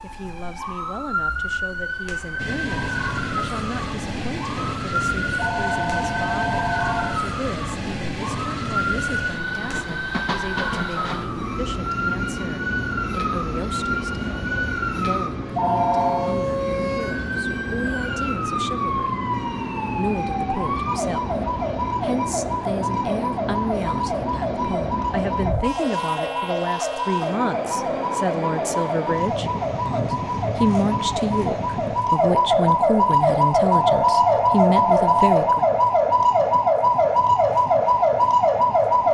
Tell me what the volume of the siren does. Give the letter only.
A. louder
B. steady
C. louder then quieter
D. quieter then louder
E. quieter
A.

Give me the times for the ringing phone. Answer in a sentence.
The ringing phone can be heard from 5.3 to 7.2 s, from 15.6 to 16.3 s and from 33.7 to 35.4 s.